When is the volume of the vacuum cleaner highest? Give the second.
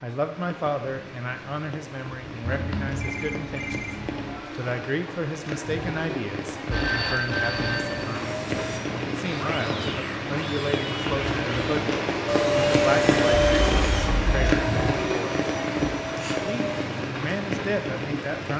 13 s.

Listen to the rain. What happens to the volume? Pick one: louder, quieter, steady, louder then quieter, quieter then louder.
louder.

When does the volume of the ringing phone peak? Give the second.
7 s.